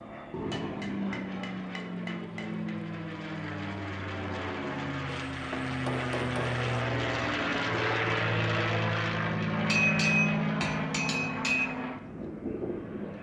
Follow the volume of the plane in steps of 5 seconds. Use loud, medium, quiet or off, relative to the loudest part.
medium, loud, loud.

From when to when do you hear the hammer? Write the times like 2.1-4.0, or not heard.
0.3-2.8, 5.3-6.7, 9.7-11.7.